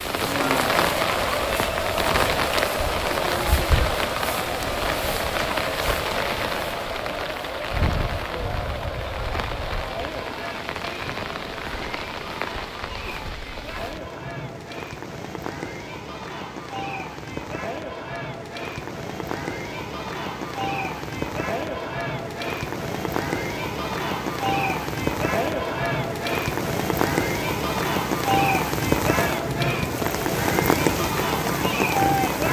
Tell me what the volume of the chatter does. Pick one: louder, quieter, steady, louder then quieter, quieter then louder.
quieter then louder.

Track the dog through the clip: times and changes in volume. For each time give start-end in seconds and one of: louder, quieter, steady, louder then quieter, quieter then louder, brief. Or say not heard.
not heard.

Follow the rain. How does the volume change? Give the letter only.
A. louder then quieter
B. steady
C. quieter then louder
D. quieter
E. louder
C.